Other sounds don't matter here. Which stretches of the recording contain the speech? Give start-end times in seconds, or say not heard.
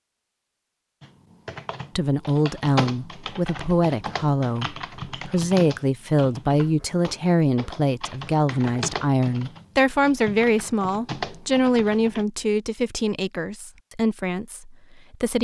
1.9-15.4.